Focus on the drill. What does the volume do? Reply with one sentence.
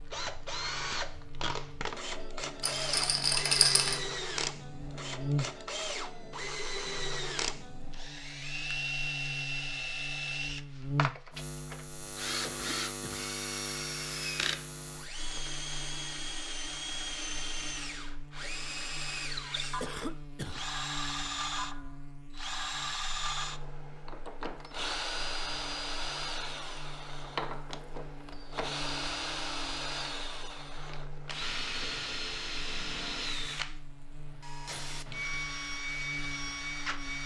The loudness of the drill stays about the same.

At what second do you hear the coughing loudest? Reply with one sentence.
The loudest moment of the coughing is at 20 seconds.